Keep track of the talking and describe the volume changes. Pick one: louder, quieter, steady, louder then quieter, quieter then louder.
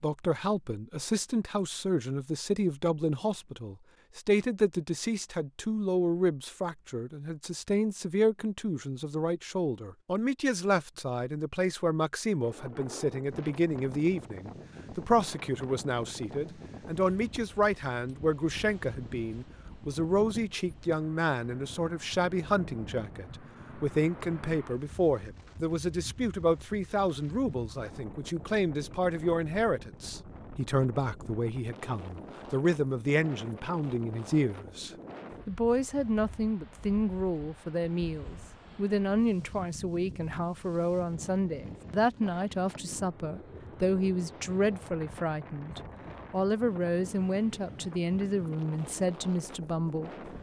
steady.